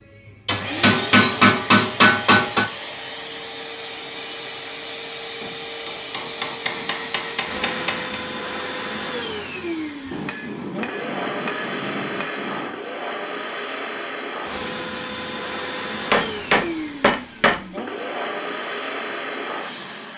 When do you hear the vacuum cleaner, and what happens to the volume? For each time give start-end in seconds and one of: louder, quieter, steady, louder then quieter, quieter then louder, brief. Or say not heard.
0.0-20.1 steady.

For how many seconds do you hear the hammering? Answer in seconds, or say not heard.
9 s.